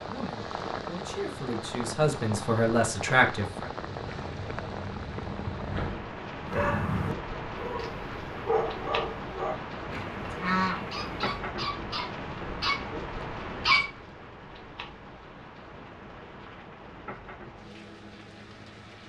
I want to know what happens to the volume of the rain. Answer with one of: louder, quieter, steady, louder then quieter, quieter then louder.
quieter.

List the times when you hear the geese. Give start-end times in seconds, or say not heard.
9.9-11.3.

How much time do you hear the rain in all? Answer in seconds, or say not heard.
19 s.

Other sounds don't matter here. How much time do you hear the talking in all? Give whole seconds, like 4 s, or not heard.
4 s.